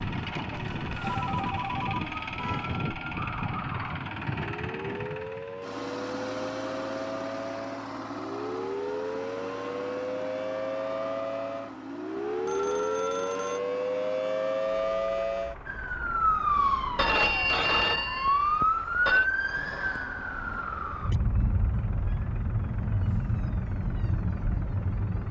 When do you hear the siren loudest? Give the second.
19 s.